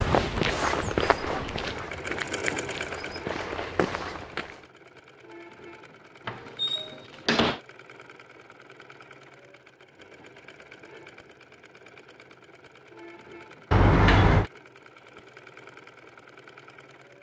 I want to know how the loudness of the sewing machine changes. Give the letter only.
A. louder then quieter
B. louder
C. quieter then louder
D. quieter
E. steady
D.